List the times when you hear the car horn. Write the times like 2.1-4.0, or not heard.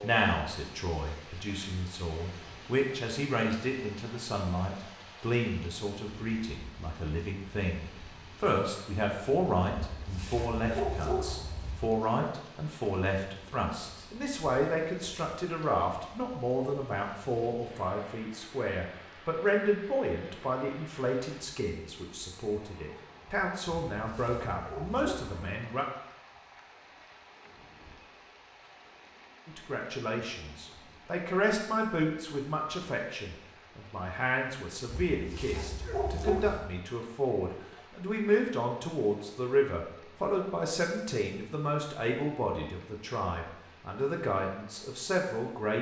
not heard.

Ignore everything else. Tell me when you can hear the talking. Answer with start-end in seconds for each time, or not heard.
0.0-25.9, 29.4-45.7.